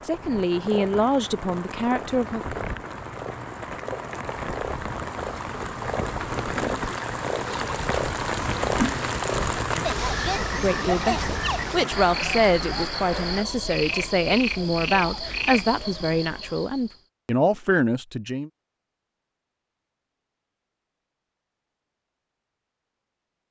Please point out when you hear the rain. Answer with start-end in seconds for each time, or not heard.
0.0-13.4.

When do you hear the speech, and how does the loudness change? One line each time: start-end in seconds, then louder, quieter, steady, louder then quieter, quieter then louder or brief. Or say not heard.
0.1-2.5 brief
10.3-18.5 steady.